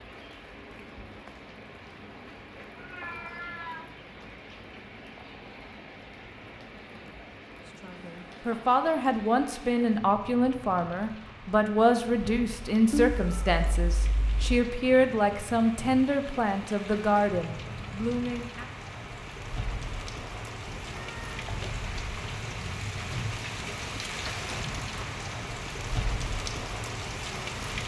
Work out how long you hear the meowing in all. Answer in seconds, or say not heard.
4 s.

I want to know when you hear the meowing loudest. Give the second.
13 s.